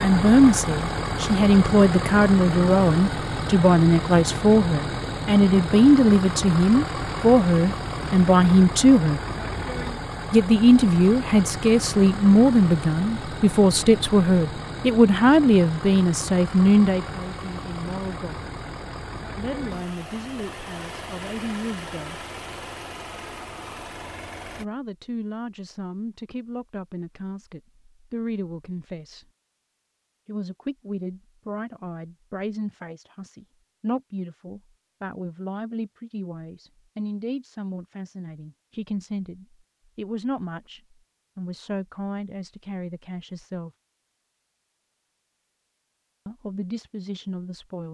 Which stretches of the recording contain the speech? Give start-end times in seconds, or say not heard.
0.0-9.2, 10.3-18.5, 19.4-22.2, 24.6-29.2, 30.2-43.7, 46.2-47.9.